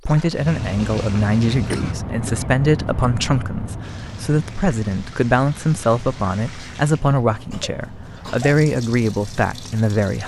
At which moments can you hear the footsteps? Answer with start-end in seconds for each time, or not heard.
not heard.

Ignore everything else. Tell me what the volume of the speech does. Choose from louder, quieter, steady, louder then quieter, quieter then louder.
steady.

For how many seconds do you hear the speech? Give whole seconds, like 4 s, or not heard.
10 s.